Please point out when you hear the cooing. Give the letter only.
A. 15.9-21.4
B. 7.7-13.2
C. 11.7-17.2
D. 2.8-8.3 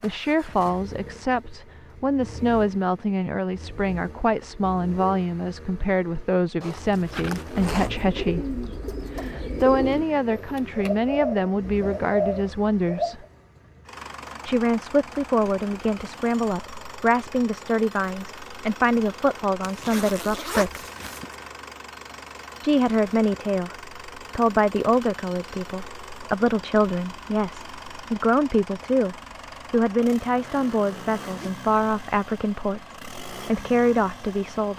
B.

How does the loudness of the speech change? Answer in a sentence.
The loudness of the speech stays about the same.